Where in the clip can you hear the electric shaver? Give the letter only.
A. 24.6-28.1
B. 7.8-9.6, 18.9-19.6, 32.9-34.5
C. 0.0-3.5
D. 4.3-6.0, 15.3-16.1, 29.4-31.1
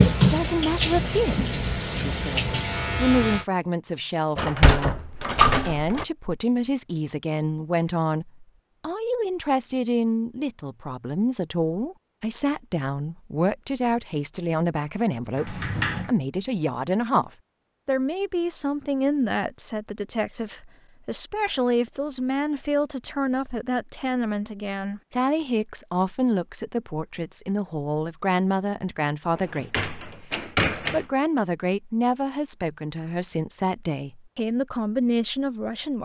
C.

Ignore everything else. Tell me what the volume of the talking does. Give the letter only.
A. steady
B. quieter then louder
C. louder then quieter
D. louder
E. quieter
A.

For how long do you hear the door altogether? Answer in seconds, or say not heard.
4 s.